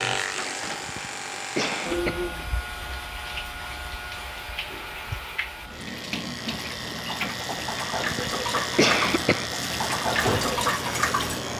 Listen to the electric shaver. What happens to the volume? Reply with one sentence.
The loudness of the electric shaver goes down, then up.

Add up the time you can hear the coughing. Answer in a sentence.
The coughing can be heard for 3 seconds in total.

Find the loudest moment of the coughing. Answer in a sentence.
The volume of the coughing peaks at 9 seconds.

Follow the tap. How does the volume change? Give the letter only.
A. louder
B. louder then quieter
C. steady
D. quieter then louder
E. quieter
A.